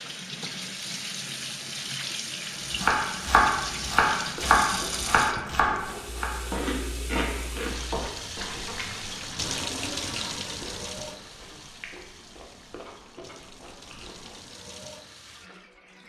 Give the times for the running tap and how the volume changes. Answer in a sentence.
You can hear the running tap from 0.0 to 16.0 s, getting quieter.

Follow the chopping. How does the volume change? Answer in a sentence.
The volume of the chopping goes down.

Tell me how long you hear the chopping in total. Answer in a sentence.
You can hear the chopping for 5 seconds altogether.